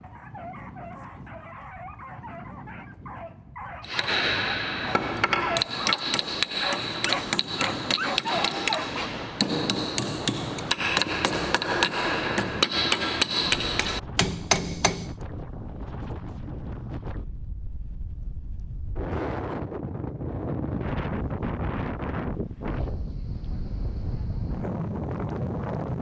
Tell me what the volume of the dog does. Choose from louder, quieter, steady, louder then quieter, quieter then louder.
louder.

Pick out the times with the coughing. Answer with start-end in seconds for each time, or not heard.
not heard.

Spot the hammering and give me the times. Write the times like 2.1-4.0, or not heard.
3.8-15.2.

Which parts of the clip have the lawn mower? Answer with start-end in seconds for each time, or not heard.
not heard.